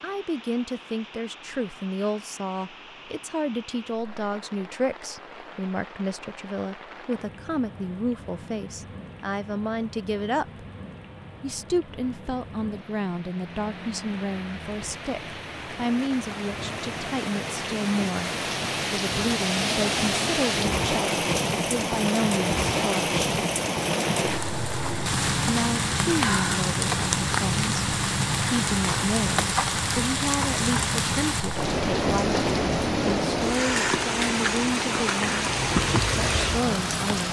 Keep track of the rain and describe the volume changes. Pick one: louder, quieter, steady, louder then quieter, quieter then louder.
louder.